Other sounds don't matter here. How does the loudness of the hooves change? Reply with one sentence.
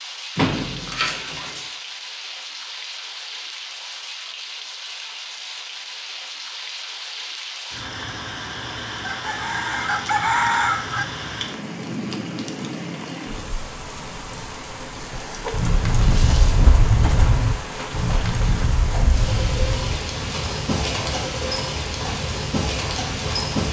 The loudness of the hooves goes down.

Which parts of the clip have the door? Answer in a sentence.
You can hear the door from 0.3 to 1.6 s.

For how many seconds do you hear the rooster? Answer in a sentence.
You can hear the rooster for 2 seconds altogether.